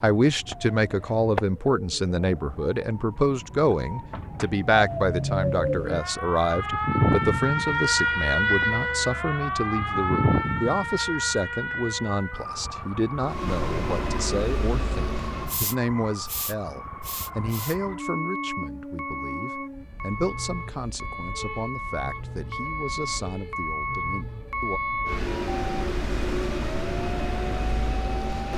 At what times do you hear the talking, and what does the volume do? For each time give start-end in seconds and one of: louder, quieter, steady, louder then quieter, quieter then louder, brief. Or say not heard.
0.0-24.8 quieter.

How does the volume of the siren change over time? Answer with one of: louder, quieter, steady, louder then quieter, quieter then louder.
louder then quieter.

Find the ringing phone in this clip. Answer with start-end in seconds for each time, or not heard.
not heard.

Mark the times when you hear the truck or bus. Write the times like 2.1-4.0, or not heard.
13.2-28.5.